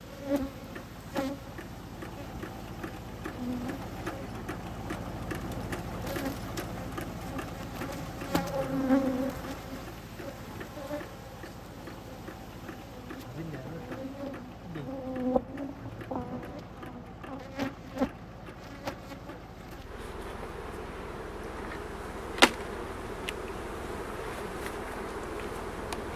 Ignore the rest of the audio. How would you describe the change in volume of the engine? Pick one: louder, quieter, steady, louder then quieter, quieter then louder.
quieter.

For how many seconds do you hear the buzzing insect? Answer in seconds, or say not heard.
26 s.